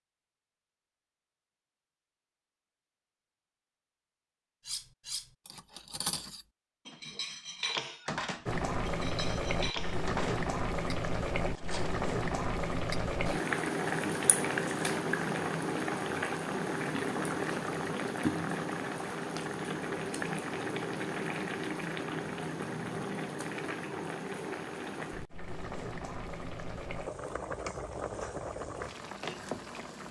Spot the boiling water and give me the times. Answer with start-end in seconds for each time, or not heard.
8.4-30.0.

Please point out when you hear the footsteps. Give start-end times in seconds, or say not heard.
not heard.